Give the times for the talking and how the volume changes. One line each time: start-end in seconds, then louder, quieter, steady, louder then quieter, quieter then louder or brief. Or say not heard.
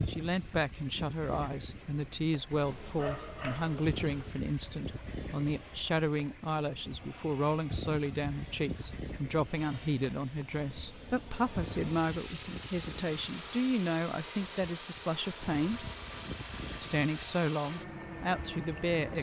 0.1-15.9 steady
16.8-19.1 brief.